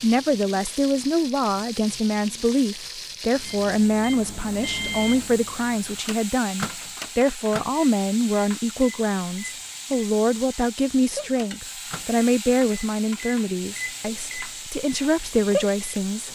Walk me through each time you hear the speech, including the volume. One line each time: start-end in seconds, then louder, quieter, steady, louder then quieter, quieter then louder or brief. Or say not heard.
0.0-16.2 steady.